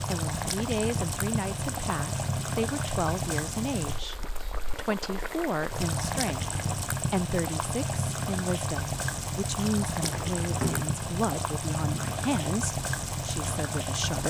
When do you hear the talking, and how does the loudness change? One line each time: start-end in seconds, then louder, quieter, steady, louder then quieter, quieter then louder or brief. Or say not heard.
0.0-14.2 steady.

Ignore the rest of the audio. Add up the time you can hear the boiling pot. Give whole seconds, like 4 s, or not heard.
14 s.